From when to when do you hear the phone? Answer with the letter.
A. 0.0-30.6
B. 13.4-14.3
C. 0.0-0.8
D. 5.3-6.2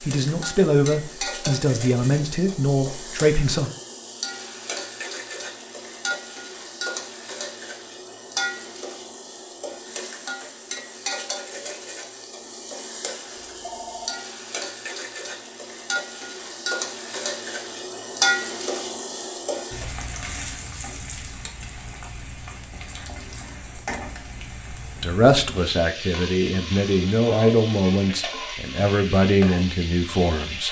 B.